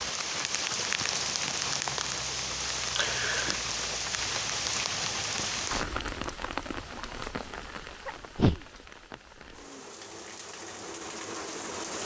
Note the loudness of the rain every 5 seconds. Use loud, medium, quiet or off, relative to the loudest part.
loud, medium, medium.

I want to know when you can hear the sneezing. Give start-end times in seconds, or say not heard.
3.0-3.5, 8.1-8.6.